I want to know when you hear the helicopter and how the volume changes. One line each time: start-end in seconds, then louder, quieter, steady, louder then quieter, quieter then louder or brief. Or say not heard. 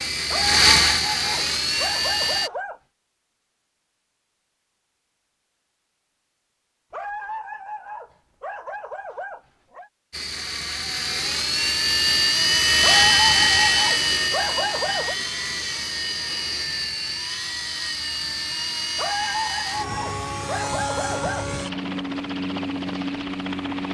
0.0-2.5 brief
10.1-23.8 quieter.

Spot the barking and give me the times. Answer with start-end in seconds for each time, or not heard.
0.3-2.8, 6.9-9.9, 12.8-15.2, 18.9-21.5.